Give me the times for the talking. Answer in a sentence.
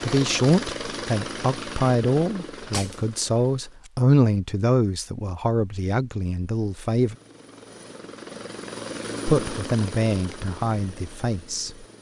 You can hear the talking from 0.0 to 7.2 s and from 9.2 to 11.8 s.